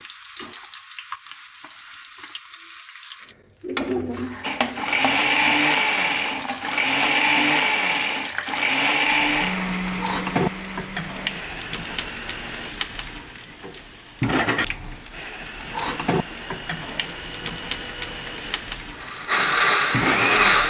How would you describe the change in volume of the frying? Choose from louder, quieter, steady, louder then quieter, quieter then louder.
steady.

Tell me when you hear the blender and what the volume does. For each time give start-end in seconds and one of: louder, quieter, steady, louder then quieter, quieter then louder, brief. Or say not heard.
4.4-12.8 quieter
14.9-20.6 louder.